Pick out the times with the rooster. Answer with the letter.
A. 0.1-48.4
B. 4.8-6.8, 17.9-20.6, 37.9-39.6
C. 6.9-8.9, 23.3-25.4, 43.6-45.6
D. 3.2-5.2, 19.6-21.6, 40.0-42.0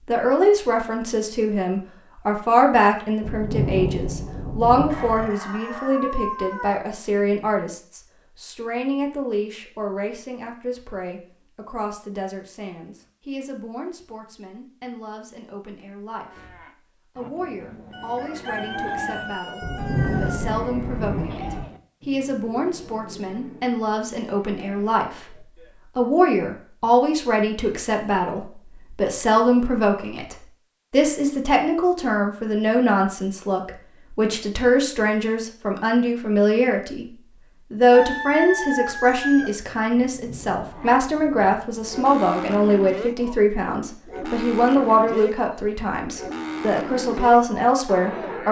B.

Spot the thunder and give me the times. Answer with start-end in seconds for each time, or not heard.
3.2-5.2, 19.6-21.6, 40.0-42.0.